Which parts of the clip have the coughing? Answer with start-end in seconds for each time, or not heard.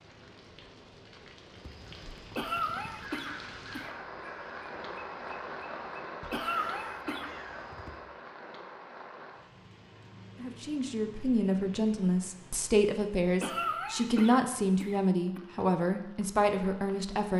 2.4-4.0, 6.3-7.3, 13.4-15.4.